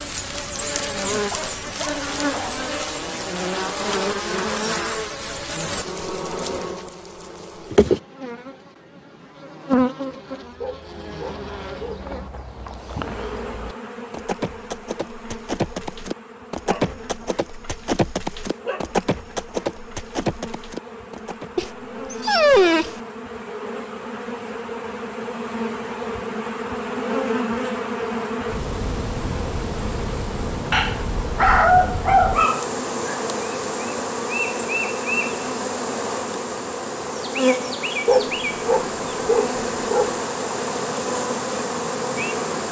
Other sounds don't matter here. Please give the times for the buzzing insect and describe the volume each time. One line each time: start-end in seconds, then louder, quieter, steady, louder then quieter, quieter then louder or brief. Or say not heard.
0.0-42.6 quieter then louder.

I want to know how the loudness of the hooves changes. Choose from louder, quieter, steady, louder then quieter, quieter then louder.
louder.